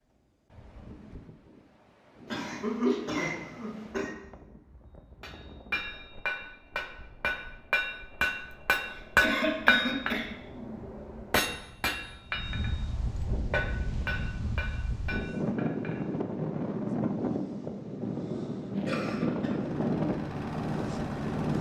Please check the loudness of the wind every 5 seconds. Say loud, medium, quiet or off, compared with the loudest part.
quiet, quiet, medium, loud, loud.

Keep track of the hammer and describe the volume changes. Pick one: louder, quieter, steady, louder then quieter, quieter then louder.
louder then quieter.